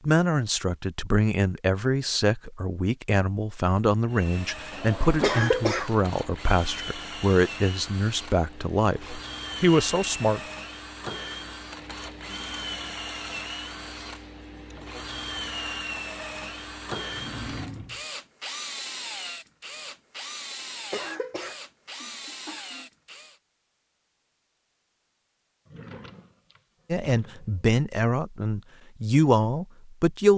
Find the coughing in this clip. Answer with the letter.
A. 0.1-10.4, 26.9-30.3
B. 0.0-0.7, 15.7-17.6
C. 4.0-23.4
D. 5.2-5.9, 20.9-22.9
D.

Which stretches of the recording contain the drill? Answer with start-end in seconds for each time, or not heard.
4.0-23.4.